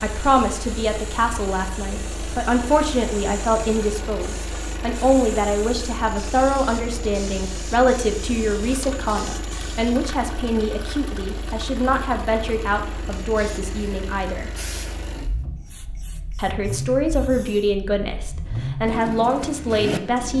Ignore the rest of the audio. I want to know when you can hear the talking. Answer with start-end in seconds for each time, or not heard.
0.0-14.5, 16.4-20.3.